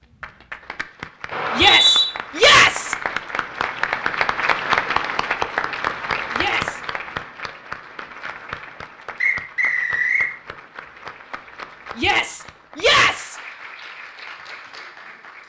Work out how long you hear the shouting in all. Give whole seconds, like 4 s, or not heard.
3 s.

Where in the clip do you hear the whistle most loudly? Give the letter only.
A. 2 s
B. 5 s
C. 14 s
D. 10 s
A.